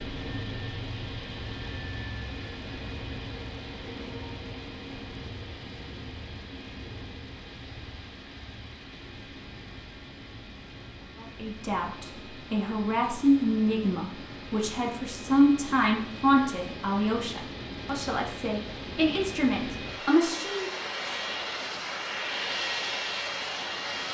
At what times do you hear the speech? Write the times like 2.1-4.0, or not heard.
11.2-20.7.